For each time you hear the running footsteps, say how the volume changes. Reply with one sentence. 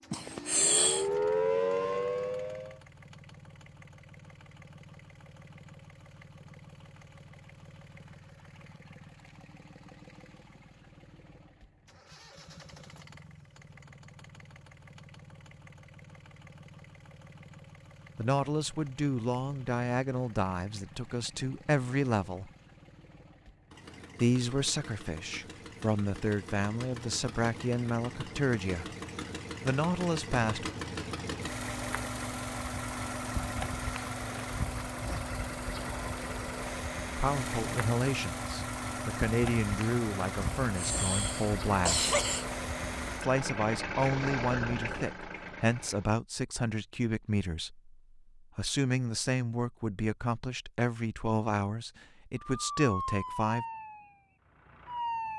You can't hear the running footsteps here.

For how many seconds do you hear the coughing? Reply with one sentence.
The coughing can be heard for 3 seconds in total.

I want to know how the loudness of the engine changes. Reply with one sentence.
The volume of the engine goes up.